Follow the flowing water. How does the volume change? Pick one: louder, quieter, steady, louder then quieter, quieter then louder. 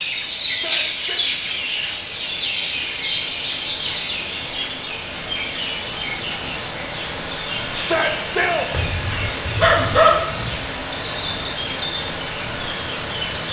louder.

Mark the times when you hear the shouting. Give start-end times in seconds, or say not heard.
0.5-1.2, 7.8-8.7.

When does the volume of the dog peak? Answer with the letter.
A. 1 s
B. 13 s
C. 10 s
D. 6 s
C.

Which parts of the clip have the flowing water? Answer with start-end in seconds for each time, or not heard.
0.0-13.4.